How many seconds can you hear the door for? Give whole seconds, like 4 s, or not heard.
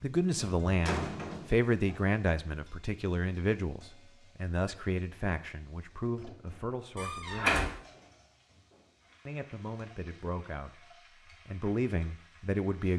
2 s.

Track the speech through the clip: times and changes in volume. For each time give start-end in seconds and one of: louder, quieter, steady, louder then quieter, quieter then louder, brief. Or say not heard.
0.0-7.6 quieter
9.2-10.8 brief
11.4-12.9 brief.